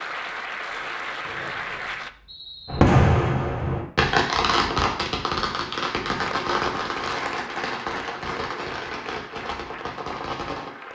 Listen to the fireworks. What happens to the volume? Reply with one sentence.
The loudness of the fireworks goes down.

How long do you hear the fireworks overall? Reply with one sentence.
You can hear the fireworks for 8 seconds altogether.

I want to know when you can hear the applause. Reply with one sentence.
You can hear the applause from 0.0 to 2.1 s and from 6.1 to 10.9 s.